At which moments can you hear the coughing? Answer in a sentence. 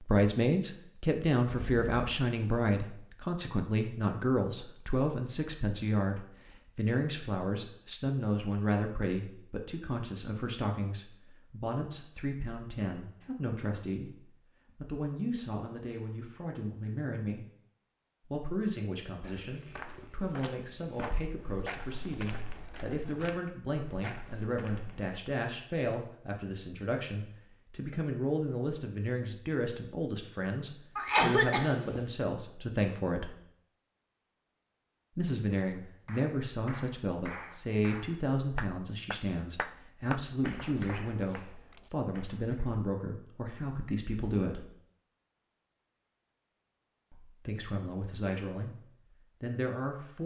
The coughing can be heard from 30.9 to 32.0 s.